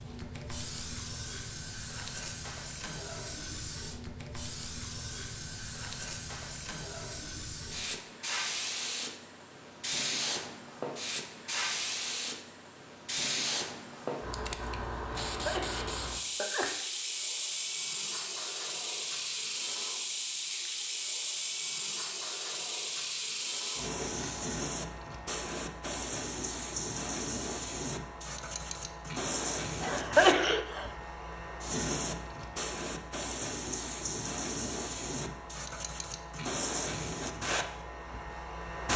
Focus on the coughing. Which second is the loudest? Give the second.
30 s.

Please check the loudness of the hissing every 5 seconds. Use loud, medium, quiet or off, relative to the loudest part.
medium, loud, loud, loud, loud, loud, loud, loud.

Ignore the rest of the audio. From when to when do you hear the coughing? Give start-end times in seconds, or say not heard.
15.3-16.7, 29.8-30.9.